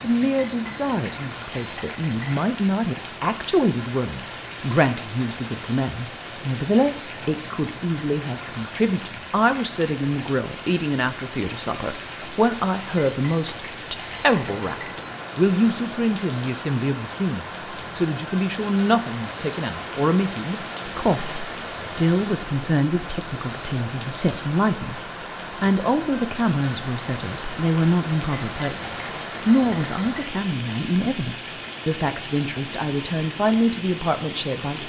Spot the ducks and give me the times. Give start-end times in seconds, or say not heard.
not heard.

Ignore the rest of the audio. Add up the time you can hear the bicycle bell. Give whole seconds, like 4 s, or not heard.
6 s.